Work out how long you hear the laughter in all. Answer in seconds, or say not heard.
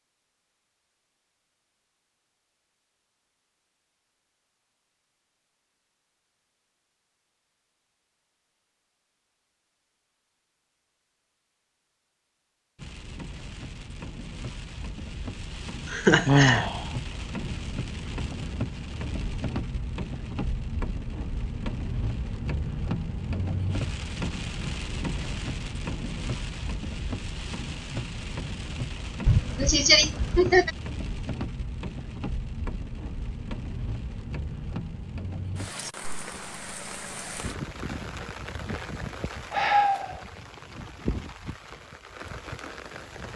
2 s.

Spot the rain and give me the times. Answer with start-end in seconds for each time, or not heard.
12.8-43.3.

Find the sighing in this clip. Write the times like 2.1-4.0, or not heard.
16.2-16.9, 39.5-40.2.